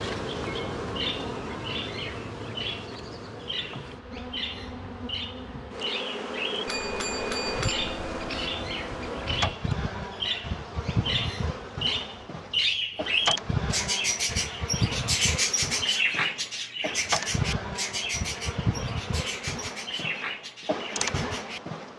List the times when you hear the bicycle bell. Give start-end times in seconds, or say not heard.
6.7-8.6.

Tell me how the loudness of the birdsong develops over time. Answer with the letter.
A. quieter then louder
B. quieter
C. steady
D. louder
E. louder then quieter
E.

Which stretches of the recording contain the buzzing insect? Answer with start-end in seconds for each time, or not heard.
0.0-21.9.